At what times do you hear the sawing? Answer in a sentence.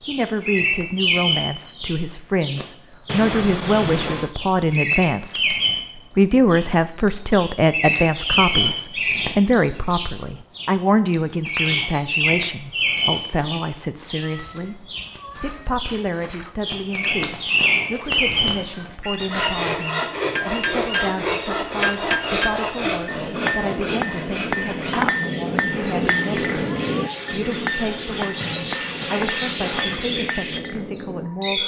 You can hear the sawing from 19.2 to 30.0 s.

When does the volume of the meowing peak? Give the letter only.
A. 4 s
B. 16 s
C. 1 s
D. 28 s
A.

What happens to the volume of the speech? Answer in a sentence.
The volume of the speech goes down.